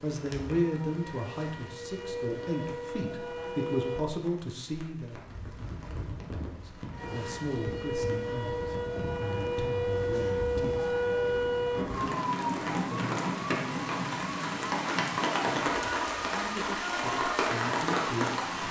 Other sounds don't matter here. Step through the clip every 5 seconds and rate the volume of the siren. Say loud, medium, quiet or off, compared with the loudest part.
medium, loud, loud, medium.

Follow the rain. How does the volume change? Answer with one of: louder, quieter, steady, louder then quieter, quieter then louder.
louder.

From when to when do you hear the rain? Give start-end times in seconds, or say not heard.
0.0-18.6.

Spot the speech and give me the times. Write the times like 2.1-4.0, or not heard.
0.0-5.2, 6.5-10.8, 16.3-18.6.